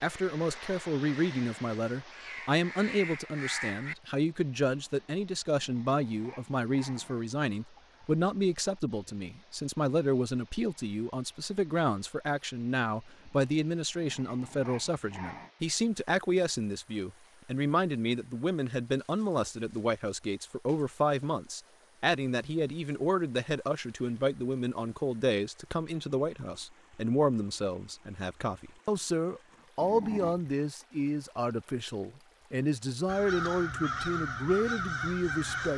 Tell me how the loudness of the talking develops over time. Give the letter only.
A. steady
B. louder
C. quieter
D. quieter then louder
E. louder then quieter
A.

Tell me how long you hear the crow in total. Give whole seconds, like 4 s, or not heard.
6 s.